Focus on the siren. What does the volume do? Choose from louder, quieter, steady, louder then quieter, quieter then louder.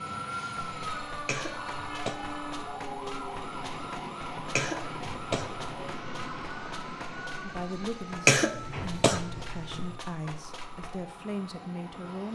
quieter.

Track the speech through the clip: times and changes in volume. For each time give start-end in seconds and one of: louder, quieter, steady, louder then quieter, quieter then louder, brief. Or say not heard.
7.4-12.2 steady.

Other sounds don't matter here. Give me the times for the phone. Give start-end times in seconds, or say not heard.
not heard.